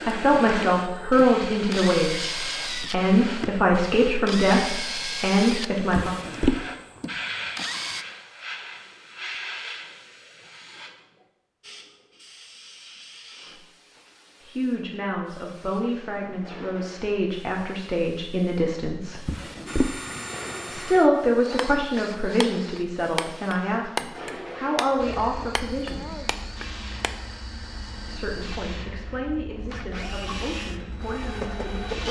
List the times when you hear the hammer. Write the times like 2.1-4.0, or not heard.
21.6-27.1.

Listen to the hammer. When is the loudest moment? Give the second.
24 s.